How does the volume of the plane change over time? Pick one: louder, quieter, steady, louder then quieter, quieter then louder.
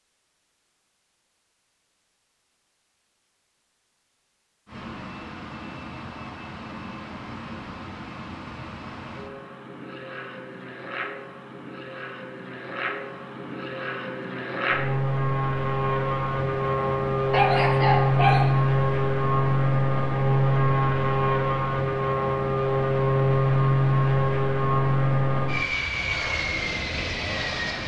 louder.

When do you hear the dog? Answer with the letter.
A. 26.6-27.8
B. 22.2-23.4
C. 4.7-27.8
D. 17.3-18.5
D.